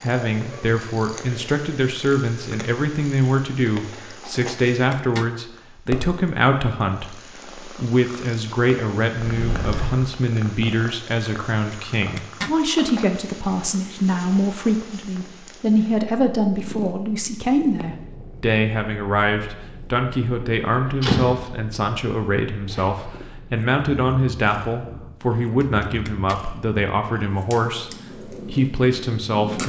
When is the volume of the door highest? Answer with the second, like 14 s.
21 s.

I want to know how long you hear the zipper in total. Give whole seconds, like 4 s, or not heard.
2 s.